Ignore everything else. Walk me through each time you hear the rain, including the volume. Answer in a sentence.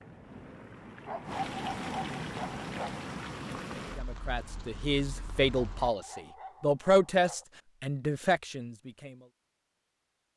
You can hear the rain from 0.0 to 5.9 s, getting louder then quieter.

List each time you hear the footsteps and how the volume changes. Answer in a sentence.
The footsteps can't be heard in this clip.